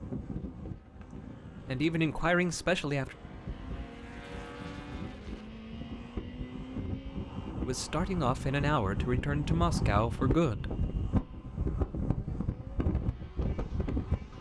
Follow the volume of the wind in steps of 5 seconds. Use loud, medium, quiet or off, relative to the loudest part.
medium, loud, loud.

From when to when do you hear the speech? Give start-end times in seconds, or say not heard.
1.6-3.1, 7.7-10.7.